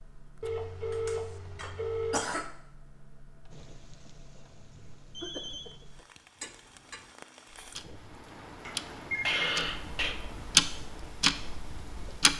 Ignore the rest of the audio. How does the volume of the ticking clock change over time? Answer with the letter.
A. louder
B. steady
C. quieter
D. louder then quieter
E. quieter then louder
A.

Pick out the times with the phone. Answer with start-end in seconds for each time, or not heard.
0.4-2.2, 5.1-5.8, 8.6-9.4.